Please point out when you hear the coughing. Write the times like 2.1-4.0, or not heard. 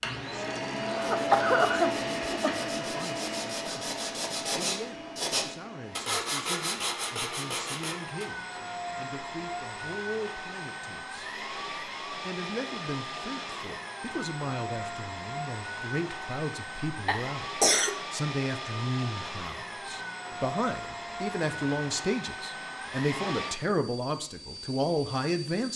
0.8-2.5, 17.1-17.9.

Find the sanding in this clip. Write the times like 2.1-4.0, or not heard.
0.9-8.3.